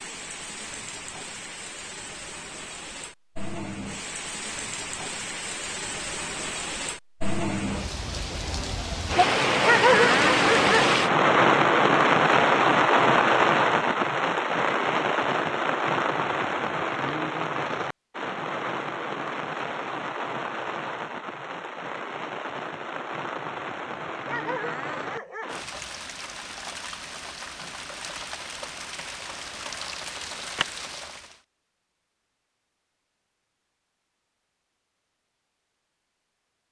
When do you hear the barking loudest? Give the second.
10 s.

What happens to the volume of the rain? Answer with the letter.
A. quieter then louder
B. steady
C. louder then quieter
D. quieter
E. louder
C.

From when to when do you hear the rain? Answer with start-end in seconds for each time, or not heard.
0.0-31.4.